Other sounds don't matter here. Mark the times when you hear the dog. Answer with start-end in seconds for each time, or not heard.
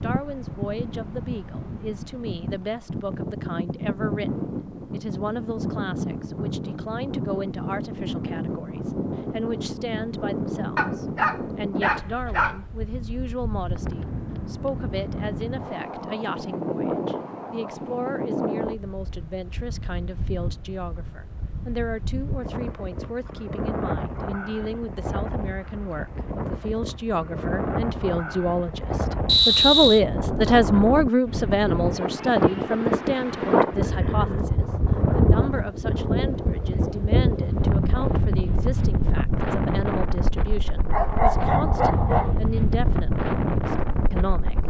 10.8-12.6, 40.9-42.4.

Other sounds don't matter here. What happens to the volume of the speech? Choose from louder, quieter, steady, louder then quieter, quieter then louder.
louder then quieter.